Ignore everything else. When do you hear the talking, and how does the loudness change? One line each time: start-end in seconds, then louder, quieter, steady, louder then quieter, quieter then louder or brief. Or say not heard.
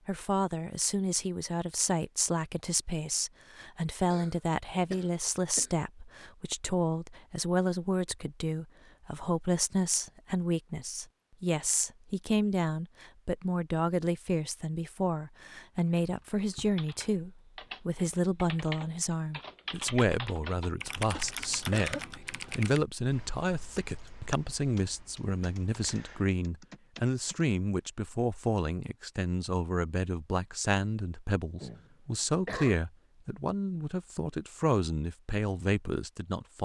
0.1-36.5 steady.